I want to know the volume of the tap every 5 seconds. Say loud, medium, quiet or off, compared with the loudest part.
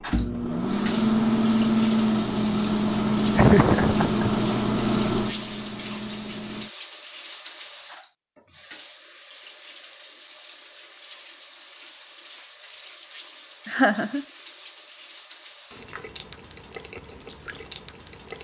loud, loud, medium, medium.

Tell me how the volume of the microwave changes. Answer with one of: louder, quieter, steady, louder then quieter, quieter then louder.
quieter.